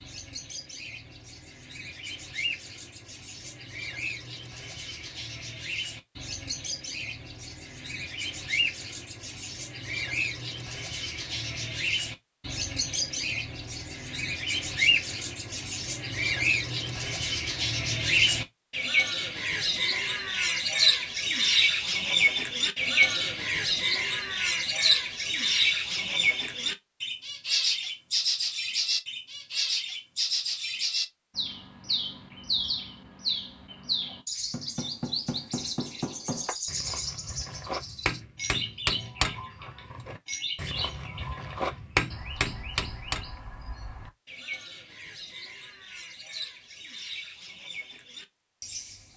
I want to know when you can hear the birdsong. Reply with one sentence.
You can hear the birdsong from 0.0 to 49.1 s.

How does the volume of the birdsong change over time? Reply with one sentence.
The loudness of the birdsong goes up, then down.